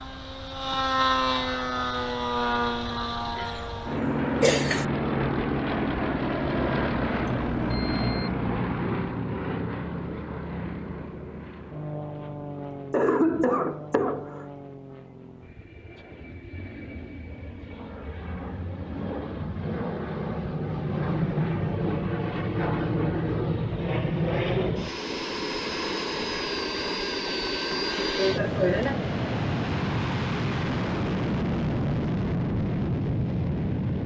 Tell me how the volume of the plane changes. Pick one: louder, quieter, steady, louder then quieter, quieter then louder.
quieter then louder.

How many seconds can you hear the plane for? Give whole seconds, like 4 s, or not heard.
34 s.